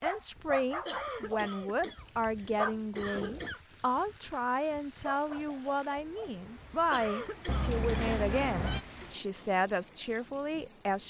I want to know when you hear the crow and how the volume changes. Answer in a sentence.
You can't hear the crow here.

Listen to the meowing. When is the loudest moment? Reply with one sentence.
The loudest moment of the meowing is at 8 seconds.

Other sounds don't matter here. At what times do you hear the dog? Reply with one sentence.
You can hear the dog from 0.0 to 6.5 s.